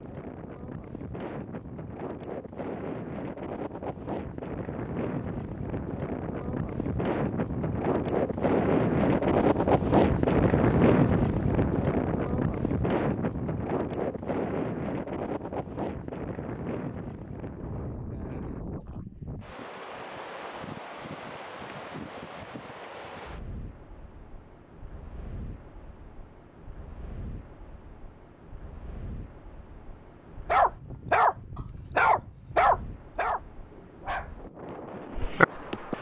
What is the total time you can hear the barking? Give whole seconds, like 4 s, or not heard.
5 s.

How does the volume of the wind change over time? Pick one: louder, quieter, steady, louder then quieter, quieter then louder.
louder then quieter.